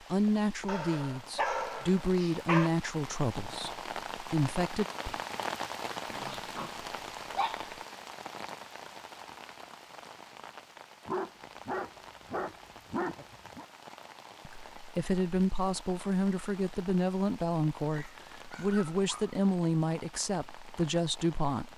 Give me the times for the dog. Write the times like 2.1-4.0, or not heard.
0.7-2.7, 6.1-7.8, 11.1-13.7, 17.9-19.4.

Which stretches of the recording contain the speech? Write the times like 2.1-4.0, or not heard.
0.1-4.8, 14.4-21.7.